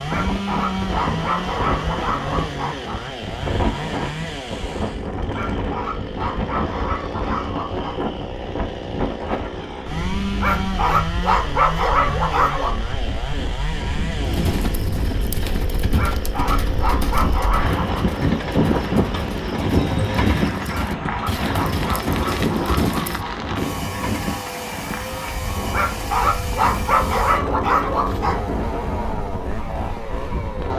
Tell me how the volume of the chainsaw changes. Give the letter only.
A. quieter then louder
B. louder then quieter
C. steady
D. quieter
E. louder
C.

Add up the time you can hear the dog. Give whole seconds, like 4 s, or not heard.
16 s.